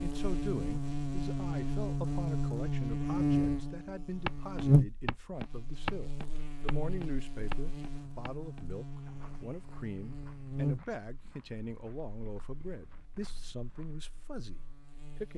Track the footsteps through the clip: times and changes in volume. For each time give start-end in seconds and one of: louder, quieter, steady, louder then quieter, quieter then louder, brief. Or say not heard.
4.2-14.0 quieter.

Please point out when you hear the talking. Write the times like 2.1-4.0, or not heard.
0.0-15.3.